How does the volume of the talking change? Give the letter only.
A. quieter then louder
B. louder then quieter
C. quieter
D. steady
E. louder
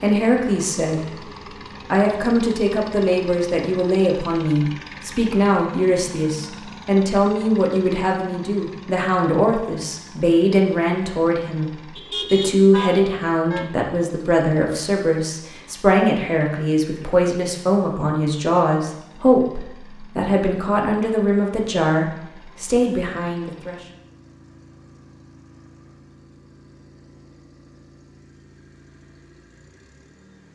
D.